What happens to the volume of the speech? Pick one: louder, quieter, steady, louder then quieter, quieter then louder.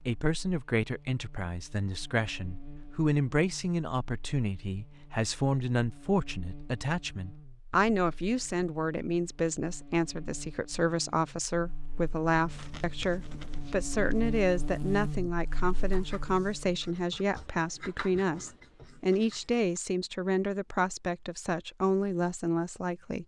steady.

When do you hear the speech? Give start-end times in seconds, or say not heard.
0.1-23.2.